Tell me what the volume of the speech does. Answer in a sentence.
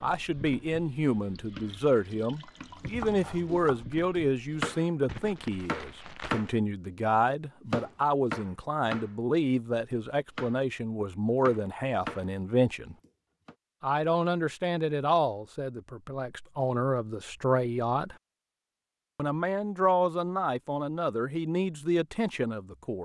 The loudness of the speech stays about the same.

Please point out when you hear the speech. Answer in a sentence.
You can hear the speech from 0.0 to 12.9 s, from 13.8 to 18.1 s and from 19.1 to 22.9 s.